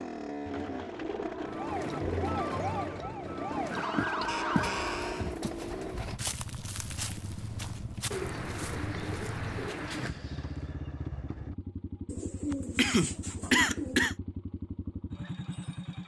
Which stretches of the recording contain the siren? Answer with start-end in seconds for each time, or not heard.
1.4-5.3.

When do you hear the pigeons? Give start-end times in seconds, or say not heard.
0.5-2.4, 4.2-6.2, 8.1-10.1, 12.1-14.1.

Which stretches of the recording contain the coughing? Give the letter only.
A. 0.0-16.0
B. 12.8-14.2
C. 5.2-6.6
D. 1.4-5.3
B.